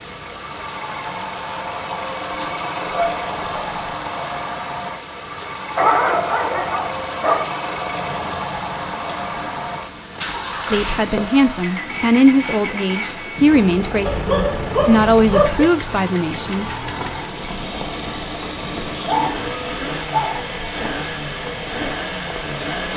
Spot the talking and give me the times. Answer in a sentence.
You can hear the talking from 10.7 to 16.7 s.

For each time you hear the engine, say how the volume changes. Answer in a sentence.
You can hear the engine from 0.0 to 22.9 s, at a steady volume.